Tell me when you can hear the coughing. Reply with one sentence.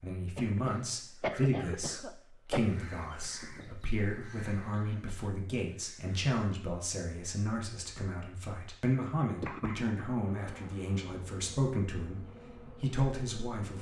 You can hear the coughing from 0.3 to 2.9 s, from 4.7 to 5.3 s and from 9.4 to 9.8 s.